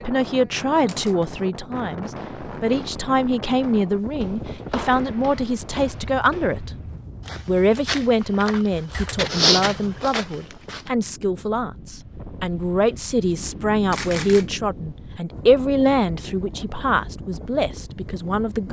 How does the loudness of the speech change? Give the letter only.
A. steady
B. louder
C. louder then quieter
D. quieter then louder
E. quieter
A.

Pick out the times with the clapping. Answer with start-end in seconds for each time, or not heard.
not heard.